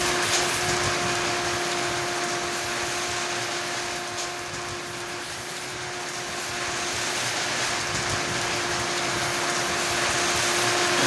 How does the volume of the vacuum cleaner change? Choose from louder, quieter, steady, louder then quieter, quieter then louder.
quieter then louder.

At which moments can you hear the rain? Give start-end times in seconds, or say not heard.
0.0-11.0.